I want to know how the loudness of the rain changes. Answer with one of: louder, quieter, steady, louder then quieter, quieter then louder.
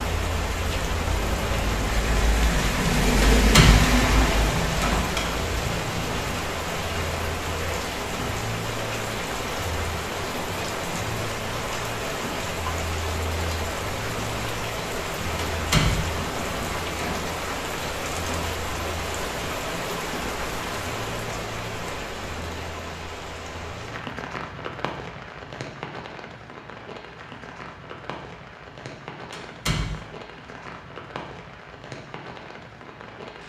quieter.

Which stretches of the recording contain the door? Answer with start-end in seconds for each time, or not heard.
3.2-5.2, 15.5-17.2, 29.3-30.1.